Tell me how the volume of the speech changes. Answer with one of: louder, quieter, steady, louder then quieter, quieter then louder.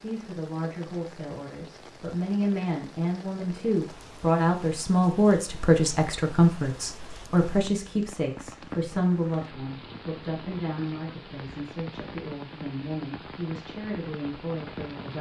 louder then quieter.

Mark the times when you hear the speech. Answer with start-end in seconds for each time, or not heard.
0.0-15.1.